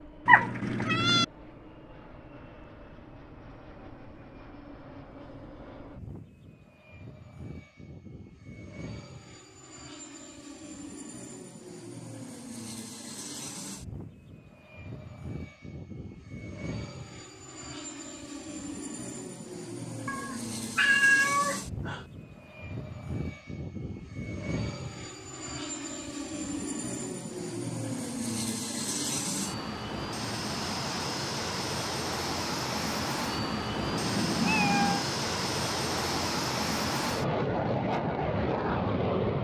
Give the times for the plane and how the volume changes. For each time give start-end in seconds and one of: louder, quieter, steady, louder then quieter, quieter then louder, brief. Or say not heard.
0.0-39.3 louder.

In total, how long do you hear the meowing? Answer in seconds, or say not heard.
4 s.